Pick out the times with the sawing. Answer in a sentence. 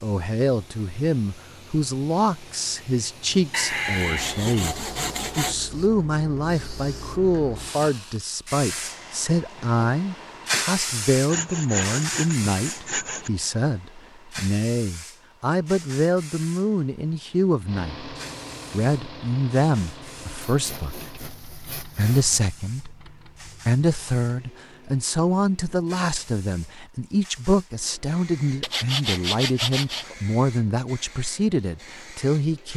You can hear the sawing from 3.5 to 5.5 s, from 11.2 to 13.3 s, from 20.4 to 22.4 s and from 28.6 to 30.1 s.